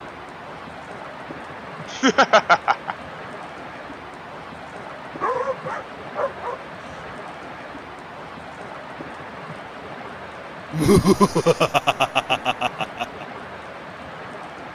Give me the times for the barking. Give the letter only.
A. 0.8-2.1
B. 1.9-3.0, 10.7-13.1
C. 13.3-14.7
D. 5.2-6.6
D.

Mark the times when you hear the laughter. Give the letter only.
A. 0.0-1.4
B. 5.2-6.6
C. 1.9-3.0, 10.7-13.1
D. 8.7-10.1
C.